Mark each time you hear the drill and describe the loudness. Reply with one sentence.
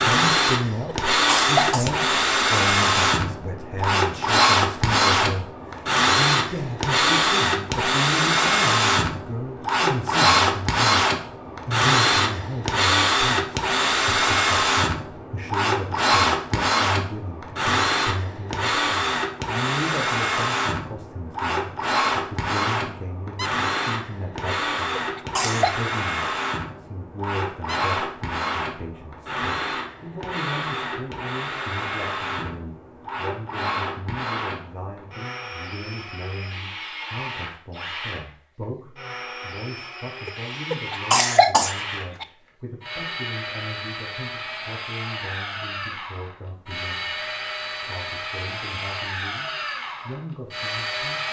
You can hear the drill from 0.0 to 51.2 s, getting quieter.